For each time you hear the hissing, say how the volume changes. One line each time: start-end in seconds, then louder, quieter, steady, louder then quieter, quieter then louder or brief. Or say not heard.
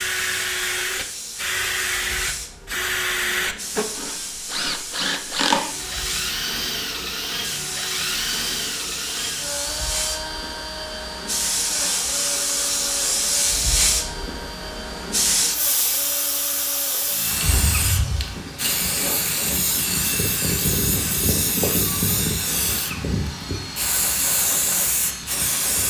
0.0-25.8 louder.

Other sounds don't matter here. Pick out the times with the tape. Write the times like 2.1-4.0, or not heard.
not heard.